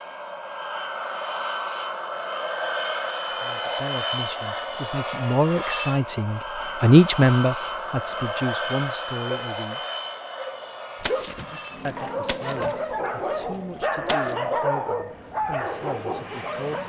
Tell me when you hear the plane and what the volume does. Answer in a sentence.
The plane can be heard from 0.0 to 16.8 s, getting quieter.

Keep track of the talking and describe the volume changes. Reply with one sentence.
The loudness of the talking goes up, then down.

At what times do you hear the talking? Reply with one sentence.
The talking can be heard from 3.3 to 9.8 s and from 11.8 to 16.8 s.